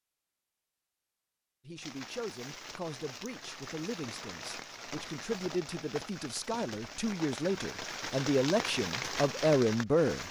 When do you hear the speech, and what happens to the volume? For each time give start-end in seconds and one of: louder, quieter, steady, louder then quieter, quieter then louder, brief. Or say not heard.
1.6-10.2 louder.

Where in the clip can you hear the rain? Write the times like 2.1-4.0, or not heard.
1.8-10.2.